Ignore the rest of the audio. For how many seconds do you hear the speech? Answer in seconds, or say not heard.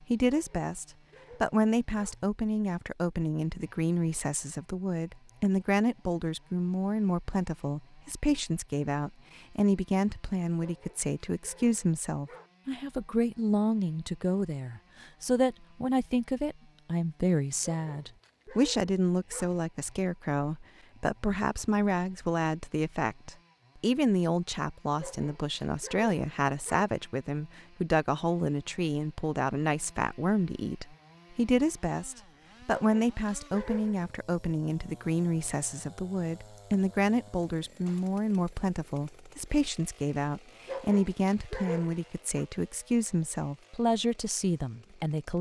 45 s.